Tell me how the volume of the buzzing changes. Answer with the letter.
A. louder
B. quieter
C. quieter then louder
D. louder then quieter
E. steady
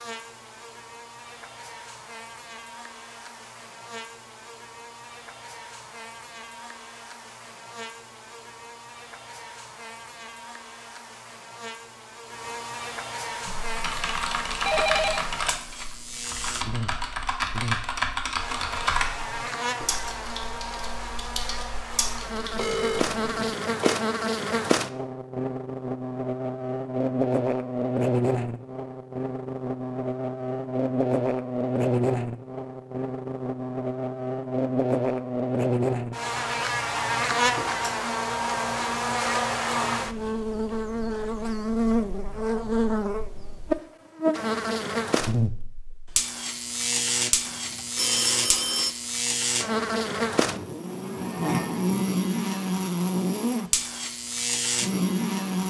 A.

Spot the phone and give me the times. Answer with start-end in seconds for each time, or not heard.
14.6-15.2, 22.6-24.0, 47.5-49.0.